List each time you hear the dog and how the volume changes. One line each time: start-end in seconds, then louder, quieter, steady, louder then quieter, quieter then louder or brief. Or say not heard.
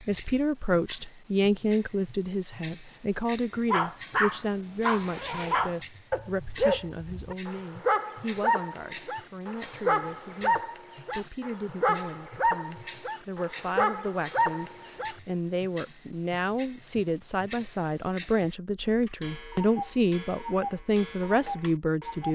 3.7-15.2 steady.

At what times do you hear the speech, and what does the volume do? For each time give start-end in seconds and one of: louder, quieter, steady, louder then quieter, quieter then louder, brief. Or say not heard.
0.1-22.3 quieter then louder.